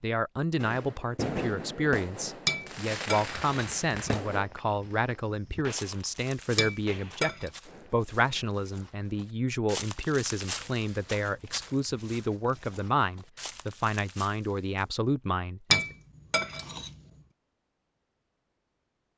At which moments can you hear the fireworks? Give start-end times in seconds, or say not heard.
0.6-8.6.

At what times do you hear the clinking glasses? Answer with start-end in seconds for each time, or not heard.
2.5-4.2, 6.5-7.5, 15.7-16.9.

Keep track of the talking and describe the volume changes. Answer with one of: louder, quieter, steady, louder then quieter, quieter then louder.
steady.